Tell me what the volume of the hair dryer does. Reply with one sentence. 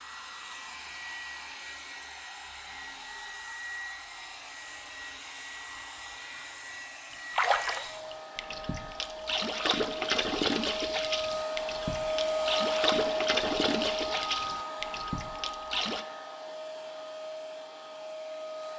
The loudness of the hair dryer goes up, then down.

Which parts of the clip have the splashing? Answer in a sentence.
You can hear the splashing from 7.1 to 16.1 s.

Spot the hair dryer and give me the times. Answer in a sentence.
You can hear the hair dryer from 0.0 to 18.7 s.